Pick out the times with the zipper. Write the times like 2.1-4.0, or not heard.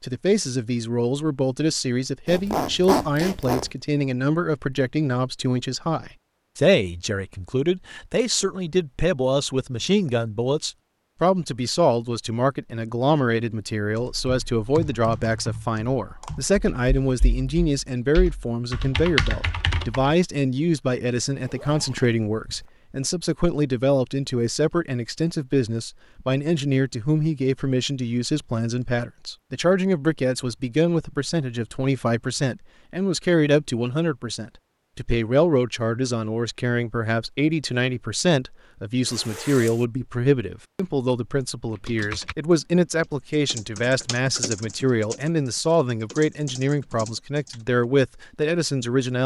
2.2-3.7, 21.2-22.8, 39.0-39.9.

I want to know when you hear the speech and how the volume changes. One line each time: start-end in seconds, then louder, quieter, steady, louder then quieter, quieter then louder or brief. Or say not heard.
0.0-49.2 steady.